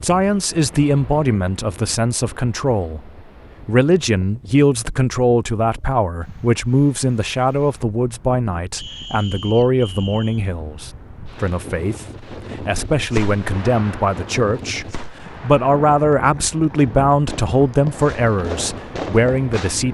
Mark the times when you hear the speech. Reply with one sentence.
You can hear the speech from 0.0 to 3.0 s and from 3.6 to 19.9 s.